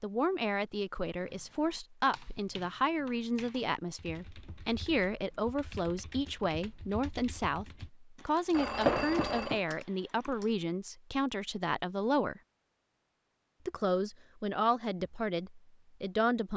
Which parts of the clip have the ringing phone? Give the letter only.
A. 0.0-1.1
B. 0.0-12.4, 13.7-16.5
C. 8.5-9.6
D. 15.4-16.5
C.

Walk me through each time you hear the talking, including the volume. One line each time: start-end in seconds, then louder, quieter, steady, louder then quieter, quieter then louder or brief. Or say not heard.
0.0-12.4 steady
13.7-16.5 brief.